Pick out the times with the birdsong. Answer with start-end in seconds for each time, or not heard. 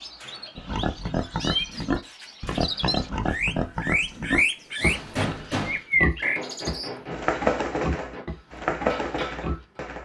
0.0-10.0.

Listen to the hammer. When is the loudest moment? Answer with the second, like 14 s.
5 s.